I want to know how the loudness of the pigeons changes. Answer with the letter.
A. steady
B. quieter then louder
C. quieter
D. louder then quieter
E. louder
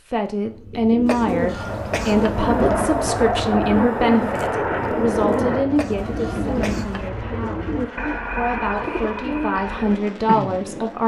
A.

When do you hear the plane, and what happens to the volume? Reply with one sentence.
The plane can be heard from 1.4 to 11.0 s, getting quieter.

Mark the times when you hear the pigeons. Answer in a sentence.
You can hear the pigeons from 0.5 to 10.7 s.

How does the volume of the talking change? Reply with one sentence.
The loudness of the talking goes down, then up.